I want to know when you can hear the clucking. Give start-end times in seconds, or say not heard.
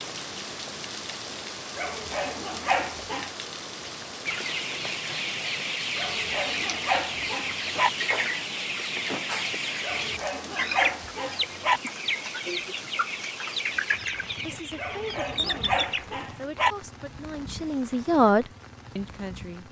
4.2-16.1.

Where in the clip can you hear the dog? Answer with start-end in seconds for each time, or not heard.
1.8-3.3, 6.0-7.9, 9.8-11.8, 14.8-16.8.